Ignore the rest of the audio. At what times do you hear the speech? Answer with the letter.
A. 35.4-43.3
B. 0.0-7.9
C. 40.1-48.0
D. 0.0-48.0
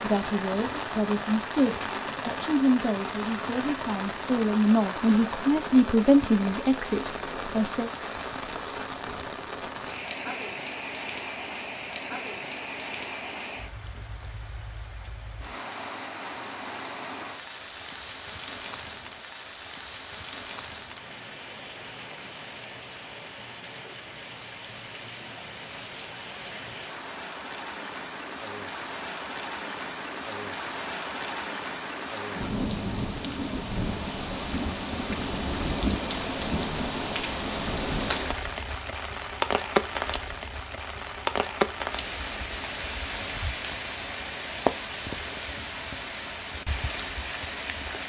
B.